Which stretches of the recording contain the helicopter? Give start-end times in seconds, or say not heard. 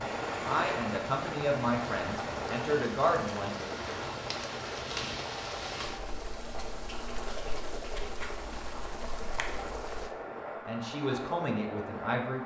0.0-12.4.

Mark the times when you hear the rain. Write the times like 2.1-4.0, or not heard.
0.0-10.2.